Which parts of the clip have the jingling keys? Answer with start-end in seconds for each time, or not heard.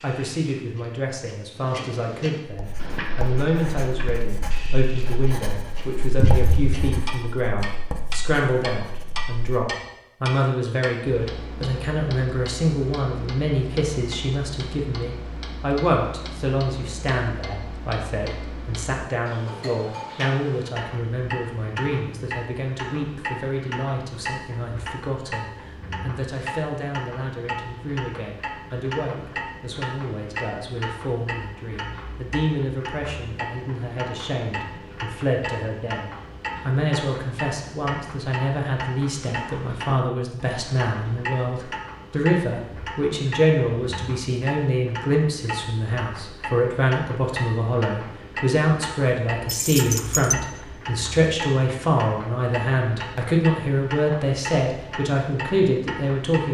6.2-7.0, 49.5-50.4.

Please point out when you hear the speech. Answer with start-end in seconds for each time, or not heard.
0.0-56.4.